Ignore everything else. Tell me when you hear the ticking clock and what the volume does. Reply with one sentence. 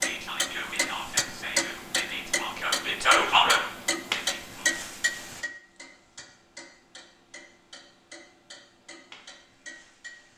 The ticking clock can be heard from 0.0 to 10.3 s, getting quieter.